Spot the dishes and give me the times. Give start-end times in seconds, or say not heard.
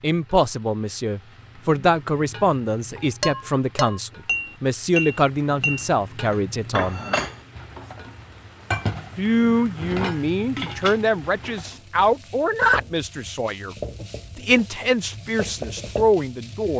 3.2-11.8.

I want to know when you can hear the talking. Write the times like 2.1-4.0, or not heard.
0.0-7.0, 9.2-13.8, 14.3-16.7.